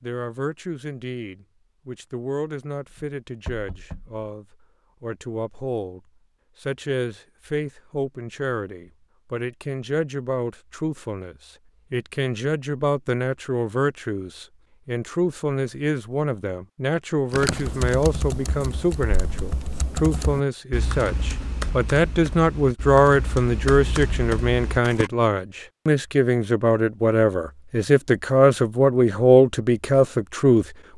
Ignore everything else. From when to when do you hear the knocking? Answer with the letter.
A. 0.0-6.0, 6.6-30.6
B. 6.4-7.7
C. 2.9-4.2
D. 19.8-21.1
C.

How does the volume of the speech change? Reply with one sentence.
The volume of the speech goes up.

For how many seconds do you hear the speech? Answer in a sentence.
The speech can be heard for 30 seconds in total.